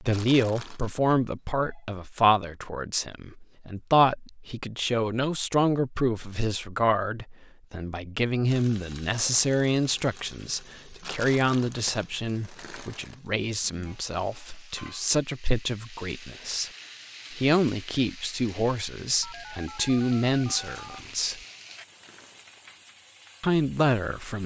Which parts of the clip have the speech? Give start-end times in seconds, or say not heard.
0.0-16.7, 17.3-21.4, 23.4-24.4.